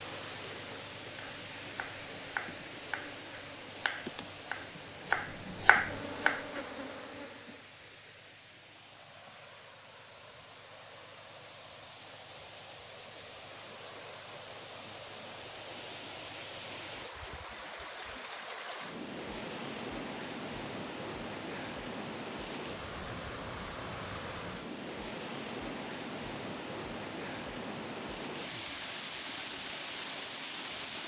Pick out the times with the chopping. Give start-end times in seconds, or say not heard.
1.1-6.7.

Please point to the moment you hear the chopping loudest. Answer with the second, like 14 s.
6 s.